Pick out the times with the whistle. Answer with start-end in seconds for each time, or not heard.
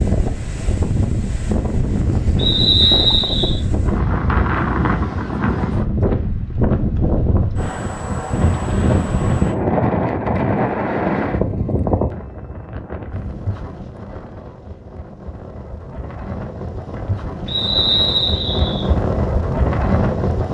2.4-3.6, 17.4-18.9.